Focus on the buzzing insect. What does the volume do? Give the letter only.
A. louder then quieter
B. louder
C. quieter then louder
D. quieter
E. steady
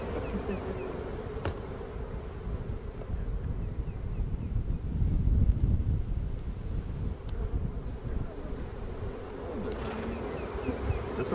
C.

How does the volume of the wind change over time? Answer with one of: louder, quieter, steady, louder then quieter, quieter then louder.
louder then quieter.